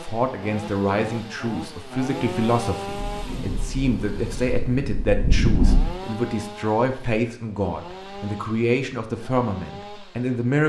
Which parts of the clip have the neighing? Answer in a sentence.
You can't hear the neighing here.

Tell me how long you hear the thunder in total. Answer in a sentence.
The thunder can be heard for 3 seconds in total.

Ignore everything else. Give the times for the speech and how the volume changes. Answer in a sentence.
The speech can be heard from 0.0 to 10.6 s, at a steady volume.